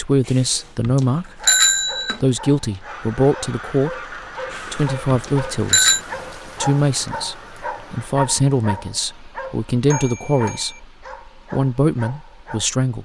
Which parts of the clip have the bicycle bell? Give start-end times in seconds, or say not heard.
0.2-2.2, 4.5-6.0, 9.9-10.8.